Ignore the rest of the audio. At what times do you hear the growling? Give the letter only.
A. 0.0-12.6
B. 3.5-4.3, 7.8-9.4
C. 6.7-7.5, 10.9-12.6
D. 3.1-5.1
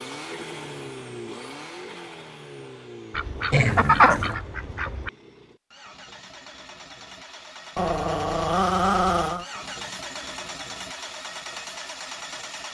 B.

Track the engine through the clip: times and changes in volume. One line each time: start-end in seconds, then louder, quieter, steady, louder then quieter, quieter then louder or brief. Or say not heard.
0.0-12.6 quieter then louder.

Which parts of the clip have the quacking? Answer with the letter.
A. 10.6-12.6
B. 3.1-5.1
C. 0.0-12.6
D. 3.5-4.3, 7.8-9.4
B.